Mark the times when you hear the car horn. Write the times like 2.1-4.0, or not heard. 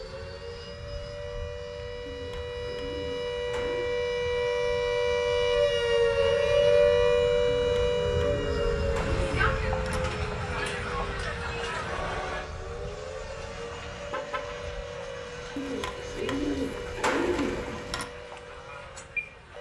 13.4-14.6.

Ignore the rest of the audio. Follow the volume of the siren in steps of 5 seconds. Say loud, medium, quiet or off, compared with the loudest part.
medium, loud, quiet, quiet.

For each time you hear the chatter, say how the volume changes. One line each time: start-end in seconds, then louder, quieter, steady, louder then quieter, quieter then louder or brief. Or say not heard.
8.8-19.5 quieter.